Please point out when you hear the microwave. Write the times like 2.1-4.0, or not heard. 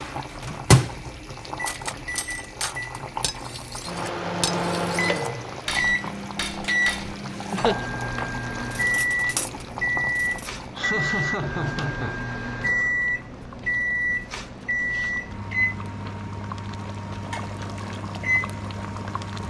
0.0-19.4.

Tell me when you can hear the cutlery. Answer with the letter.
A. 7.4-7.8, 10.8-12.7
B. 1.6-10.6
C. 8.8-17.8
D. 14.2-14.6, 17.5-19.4
B.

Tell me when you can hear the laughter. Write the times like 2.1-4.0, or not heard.
7.4-7.8, 10.8-12.7.